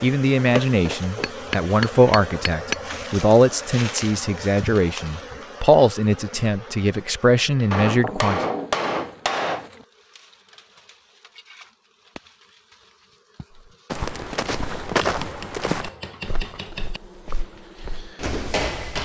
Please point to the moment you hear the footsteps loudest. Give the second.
15 s.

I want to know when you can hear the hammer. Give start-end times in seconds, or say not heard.
1.2-3.0, 7.7-9.7, 15.0-17.0.